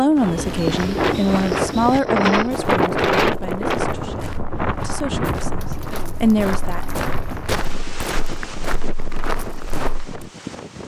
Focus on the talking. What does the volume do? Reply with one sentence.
The loudness of the talking goes down, then up.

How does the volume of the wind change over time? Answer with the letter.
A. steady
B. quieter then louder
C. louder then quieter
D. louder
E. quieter
E.